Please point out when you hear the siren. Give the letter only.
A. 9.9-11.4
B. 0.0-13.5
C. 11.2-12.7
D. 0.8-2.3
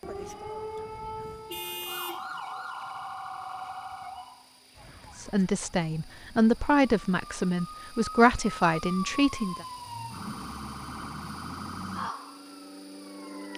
B.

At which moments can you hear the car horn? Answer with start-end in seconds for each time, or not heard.
0.8-2.3.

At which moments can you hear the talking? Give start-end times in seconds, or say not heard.
5.2-9.7.